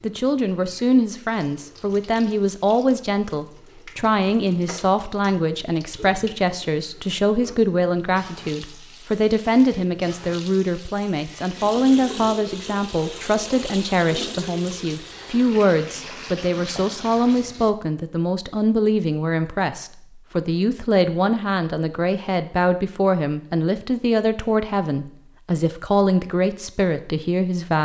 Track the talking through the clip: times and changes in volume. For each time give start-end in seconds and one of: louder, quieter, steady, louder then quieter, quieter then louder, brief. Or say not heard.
0.0-27.8 steady.